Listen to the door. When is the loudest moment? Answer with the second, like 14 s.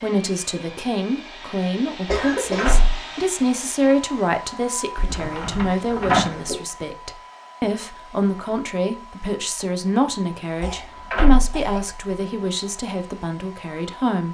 6 s.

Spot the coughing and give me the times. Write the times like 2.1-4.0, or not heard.
2.0-2.7, 5.0-6.6, 10.6-11.9.